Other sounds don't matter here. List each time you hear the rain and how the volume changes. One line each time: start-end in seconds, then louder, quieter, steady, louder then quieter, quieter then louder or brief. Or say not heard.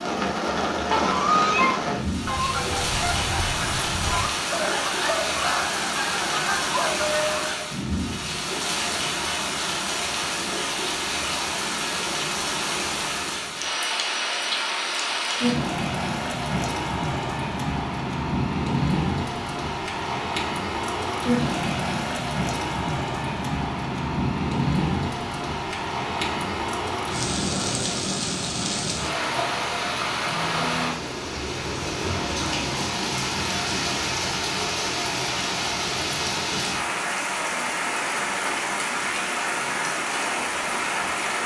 0.0-41.4 steady.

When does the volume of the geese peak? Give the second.
1 s.